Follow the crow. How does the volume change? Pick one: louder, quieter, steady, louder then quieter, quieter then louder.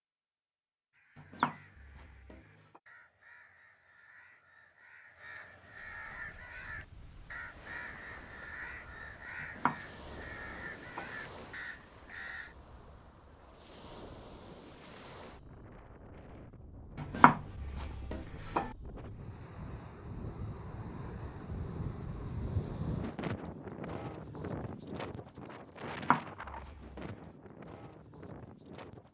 louder.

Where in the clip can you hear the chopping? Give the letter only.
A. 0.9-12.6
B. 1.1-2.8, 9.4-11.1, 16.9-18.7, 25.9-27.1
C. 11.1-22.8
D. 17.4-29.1
B.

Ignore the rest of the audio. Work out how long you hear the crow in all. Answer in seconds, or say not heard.
12 s.